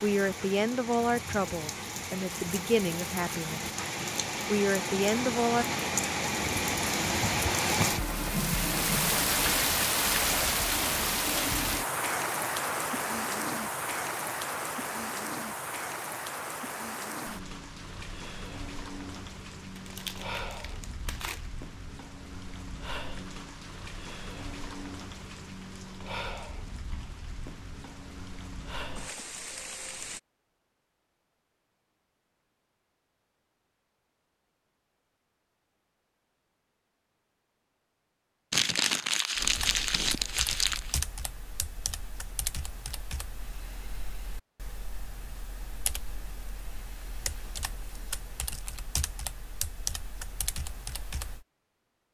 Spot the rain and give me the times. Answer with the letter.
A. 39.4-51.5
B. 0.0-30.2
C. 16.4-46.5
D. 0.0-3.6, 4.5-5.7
B.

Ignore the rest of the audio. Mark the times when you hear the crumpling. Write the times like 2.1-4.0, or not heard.
19.8-21.5, 38.5-41.0.